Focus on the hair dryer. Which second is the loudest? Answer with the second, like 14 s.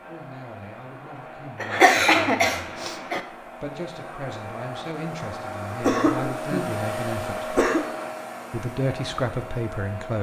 7 s.